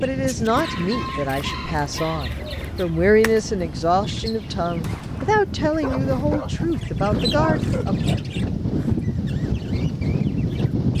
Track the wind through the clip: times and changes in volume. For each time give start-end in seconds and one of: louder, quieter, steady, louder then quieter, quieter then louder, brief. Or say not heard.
0.0-10.9 louder.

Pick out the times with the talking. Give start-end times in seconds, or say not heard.
0.0-8.0.